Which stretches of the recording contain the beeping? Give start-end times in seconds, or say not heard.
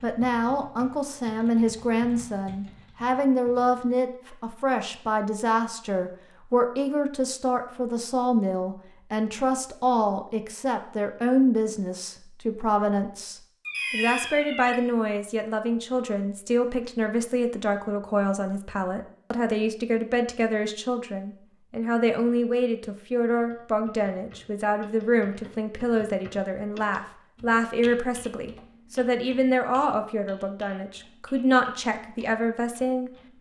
13.7-14.8.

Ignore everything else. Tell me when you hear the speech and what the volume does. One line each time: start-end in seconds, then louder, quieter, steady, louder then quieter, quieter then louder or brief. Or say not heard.
0.0-33.1 steady.